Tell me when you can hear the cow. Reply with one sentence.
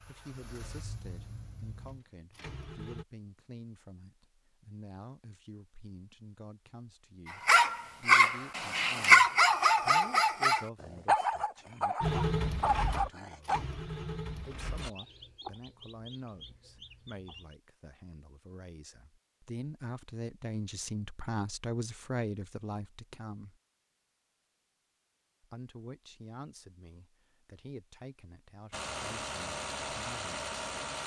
The cow can't be heard in this clip.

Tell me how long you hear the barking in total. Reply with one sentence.
The barking can be heard for 6 seconds in total.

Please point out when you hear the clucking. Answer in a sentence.
The clucking can be heard from 14.8 to 17.6 s.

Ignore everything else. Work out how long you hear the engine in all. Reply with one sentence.
The engine can be heard for 8 seconds in total.